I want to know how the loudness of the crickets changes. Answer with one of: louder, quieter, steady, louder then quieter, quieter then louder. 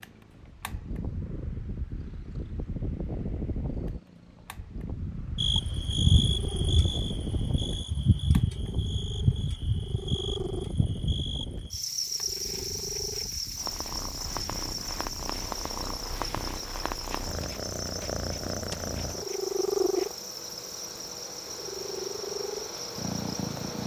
quieter.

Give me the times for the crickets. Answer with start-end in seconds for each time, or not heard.
5.3-23.8.